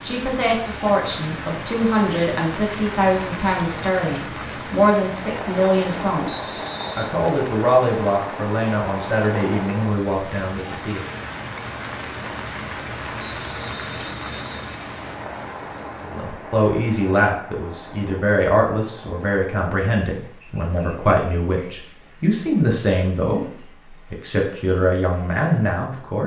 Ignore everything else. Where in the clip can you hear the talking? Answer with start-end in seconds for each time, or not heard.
0.0-11.1, 16.0-26.2.